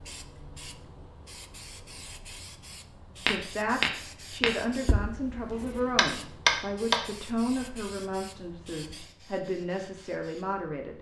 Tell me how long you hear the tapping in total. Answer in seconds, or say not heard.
4 s.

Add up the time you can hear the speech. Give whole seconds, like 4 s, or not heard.
8 s.